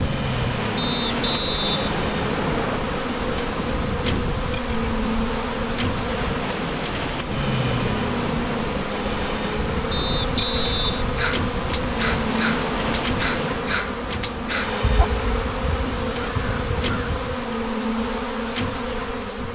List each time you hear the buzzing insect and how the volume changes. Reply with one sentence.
You can hear the buzzing insect from 0.0 to 19.5 s, at a steady volume.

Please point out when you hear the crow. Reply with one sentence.
You can hear the crow from 11.2 to 17.4 s.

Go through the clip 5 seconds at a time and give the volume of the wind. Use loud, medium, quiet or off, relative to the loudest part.
loud, loud, loud, quiet.